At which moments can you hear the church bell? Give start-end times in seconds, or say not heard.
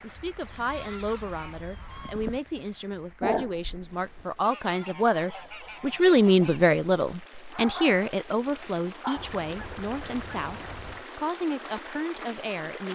not heard.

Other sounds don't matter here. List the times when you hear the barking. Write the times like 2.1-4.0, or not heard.
3.2-4.2, 7.5-9.3.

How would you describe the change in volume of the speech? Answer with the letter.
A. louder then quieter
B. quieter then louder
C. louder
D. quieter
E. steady
A.